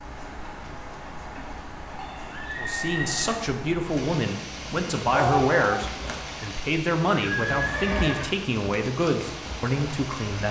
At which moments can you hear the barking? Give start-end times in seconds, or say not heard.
5.1-5.8.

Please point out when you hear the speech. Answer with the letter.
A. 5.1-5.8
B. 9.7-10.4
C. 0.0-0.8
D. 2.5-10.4
D.